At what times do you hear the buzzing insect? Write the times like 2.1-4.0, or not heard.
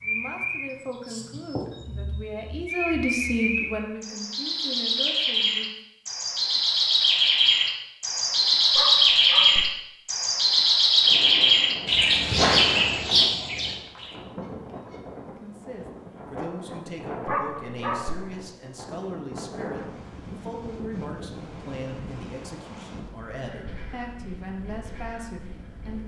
not heard.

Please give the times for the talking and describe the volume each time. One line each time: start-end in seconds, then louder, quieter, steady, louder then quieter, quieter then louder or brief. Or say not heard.
0.0-5.7 louder then quieter
15.3-26.0 steady.